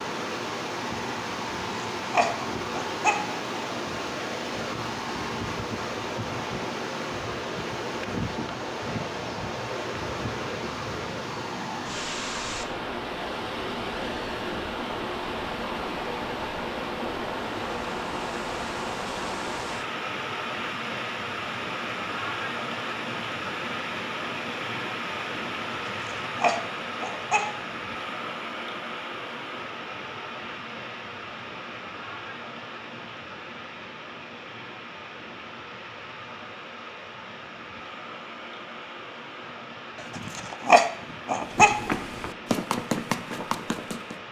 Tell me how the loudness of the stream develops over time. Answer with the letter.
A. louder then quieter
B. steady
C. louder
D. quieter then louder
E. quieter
E.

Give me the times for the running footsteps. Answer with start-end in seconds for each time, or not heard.
41.4-44.2.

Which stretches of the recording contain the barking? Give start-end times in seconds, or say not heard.
1.6-3.2, 25.9-27.4, 40.1-41.8.